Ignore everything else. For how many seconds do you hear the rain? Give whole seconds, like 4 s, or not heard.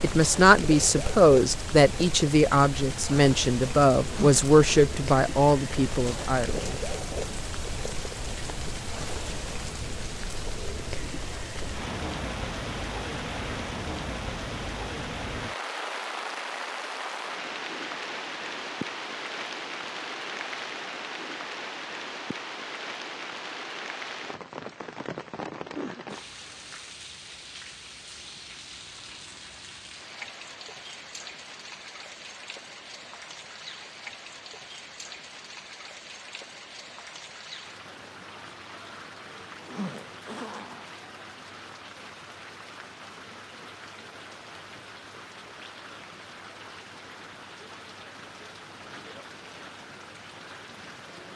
51 s.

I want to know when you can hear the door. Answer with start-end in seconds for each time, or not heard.
not heard.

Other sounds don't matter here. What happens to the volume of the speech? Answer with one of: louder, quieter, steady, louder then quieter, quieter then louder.
quieter.